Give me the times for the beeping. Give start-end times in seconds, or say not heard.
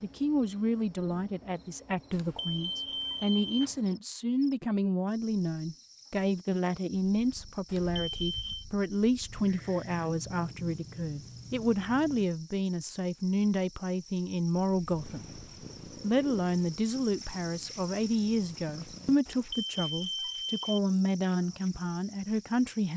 2.1-3.6, 7.7-8.7, 19.2-20.8.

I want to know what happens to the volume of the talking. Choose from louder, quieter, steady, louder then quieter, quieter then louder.
steady.